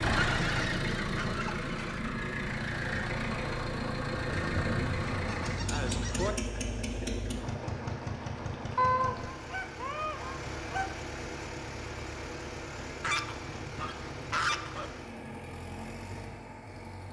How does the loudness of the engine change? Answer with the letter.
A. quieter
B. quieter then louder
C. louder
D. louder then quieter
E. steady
A.